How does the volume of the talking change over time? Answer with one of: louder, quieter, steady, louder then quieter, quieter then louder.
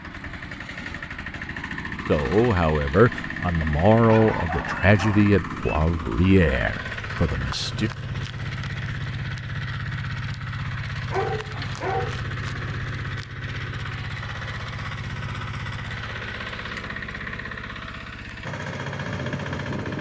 quieter.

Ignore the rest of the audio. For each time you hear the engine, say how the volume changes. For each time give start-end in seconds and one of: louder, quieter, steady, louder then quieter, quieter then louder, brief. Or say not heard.
0.0-19.9 steady.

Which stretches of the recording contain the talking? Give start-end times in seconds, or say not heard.
2.0-7.9.